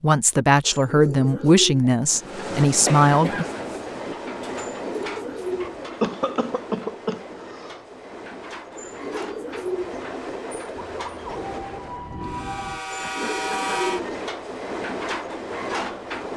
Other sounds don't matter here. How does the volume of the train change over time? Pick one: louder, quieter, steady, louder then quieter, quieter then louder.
quieter then louder.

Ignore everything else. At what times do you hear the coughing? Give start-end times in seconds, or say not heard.
2.9-3.5, 6.0-7.8, 13.0-13.8.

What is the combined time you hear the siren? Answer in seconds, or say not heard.
2 s.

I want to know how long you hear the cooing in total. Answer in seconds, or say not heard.
5 s.